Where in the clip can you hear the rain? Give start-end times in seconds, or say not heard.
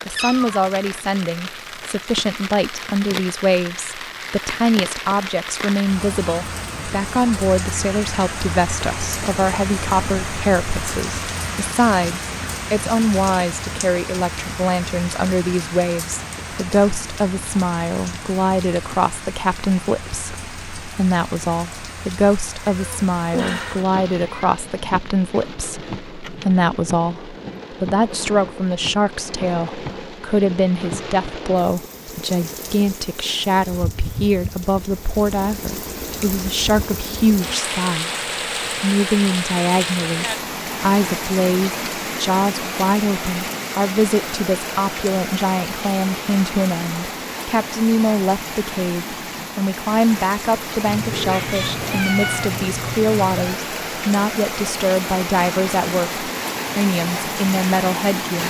0.0-58.4.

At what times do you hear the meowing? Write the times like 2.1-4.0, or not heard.
0.1-0.7, 22.7-24.6, 50.9-53.6.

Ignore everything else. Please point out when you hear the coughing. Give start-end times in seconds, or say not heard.
not heard.